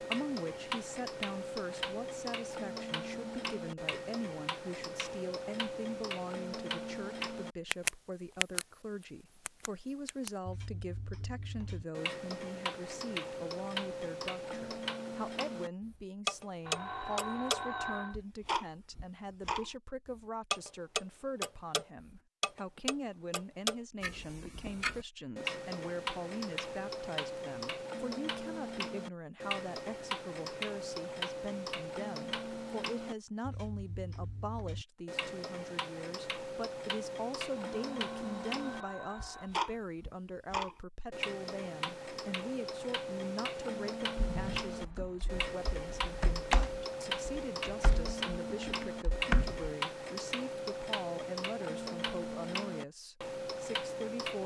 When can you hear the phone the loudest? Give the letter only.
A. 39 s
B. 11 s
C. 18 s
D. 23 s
C.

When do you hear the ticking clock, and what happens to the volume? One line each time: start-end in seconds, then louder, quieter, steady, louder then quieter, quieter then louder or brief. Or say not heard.
0.0-54.4 steady.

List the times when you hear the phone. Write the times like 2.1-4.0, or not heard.
16.6-18.1, 37.5-39.9.